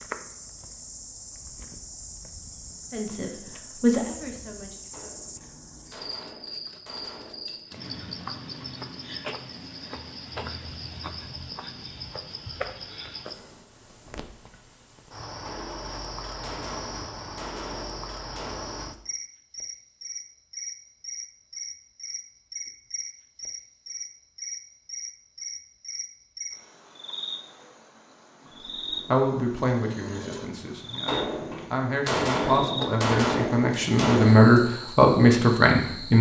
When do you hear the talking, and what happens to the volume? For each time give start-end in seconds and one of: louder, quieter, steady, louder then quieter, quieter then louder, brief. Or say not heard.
2.9-5.2 brief
29.1-36.1 louder.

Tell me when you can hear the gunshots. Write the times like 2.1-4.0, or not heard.
4.9-7.9, 15.4-18.9, 31.1-34.5.